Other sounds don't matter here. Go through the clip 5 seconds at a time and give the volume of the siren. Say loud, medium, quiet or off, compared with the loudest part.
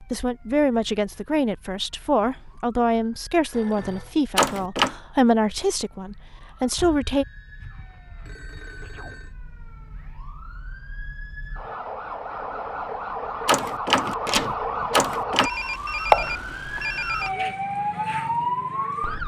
quiet, quiet, medium, loud.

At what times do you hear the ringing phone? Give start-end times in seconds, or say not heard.
3.5-4.2, 6.8-9.3, 15.3-17.3.